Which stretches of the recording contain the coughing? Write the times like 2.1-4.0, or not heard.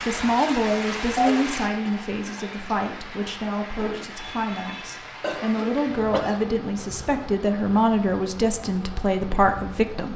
1.1-1.9, 5.2-6.5.